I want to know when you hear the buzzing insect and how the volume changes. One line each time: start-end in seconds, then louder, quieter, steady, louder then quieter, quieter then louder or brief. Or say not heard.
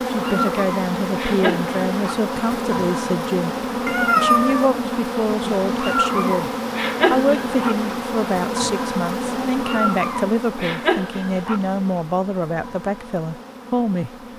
0.0-14.3 quieter.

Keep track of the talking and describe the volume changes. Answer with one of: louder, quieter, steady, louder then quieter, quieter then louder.
steady.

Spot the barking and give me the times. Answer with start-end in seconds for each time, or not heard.
0.2-2.1, 5.8-7.8, 9.6-11.6.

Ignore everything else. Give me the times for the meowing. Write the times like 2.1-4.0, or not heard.
3.9-4.7.